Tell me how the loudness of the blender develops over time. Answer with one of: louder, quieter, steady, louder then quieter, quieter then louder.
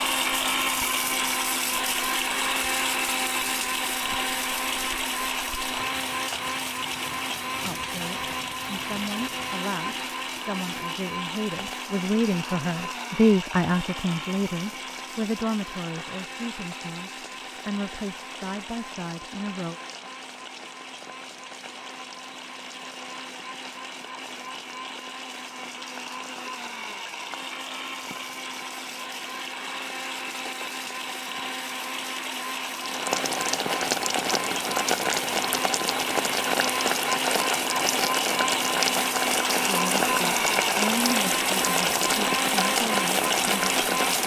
quieter then louder.